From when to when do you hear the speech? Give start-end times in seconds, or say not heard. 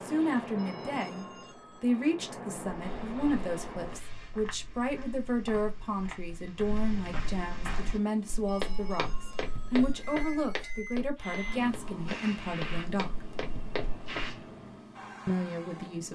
0.0-13.2, 15.2-16.0.